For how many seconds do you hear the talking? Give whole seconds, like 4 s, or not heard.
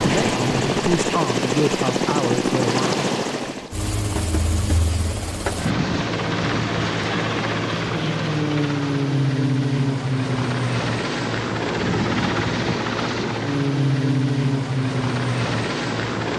3 s.